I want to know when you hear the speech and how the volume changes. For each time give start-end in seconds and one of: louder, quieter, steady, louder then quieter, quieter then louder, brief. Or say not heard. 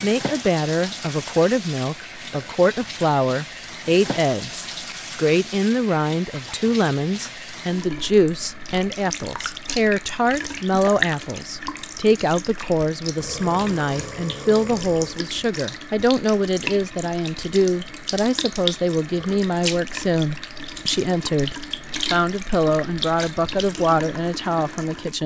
0.0-25.2 steady.